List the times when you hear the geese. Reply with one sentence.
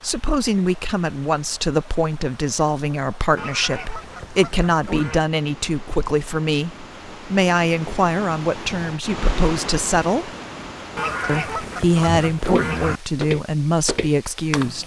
The geese can be heard from 3.4 to 5.2 s and from 10.9 to 13.0 s.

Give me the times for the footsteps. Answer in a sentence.
The footsteps can be heard from 12.1 to 14.8 s.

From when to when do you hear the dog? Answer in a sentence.
The dog can't be heard in this clip.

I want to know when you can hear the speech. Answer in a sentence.
You can hear the speech from 0.0 to 10.3 s and from 11.2 to 14.8 s.